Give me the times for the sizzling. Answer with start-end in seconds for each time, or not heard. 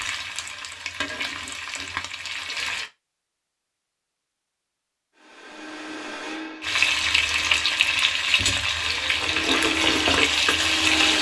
0.0-2.9, 6.6-11.1.